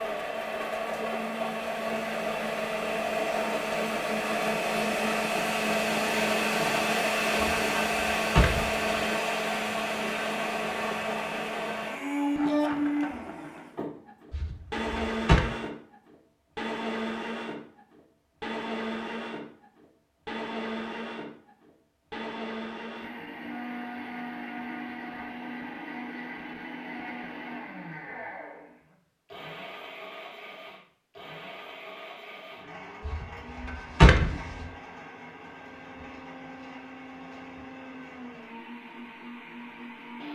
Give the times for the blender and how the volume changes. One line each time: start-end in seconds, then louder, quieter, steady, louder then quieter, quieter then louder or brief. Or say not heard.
0.0-40.3 quieter.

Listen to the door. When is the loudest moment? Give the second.
34 s.